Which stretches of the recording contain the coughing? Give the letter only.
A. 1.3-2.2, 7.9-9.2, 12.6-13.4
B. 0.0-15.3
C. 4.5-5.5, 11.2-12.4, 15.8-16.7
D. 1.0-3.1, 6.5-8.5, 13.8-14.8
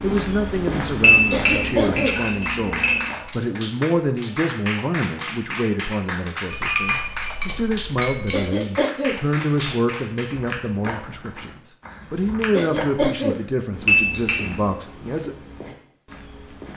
A.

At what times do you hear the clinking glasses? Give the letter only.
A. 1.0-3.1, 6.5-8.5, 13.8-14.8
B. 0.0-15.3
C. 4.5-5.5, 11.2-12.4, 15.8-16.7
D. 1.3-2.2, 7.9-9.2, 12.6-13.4
A.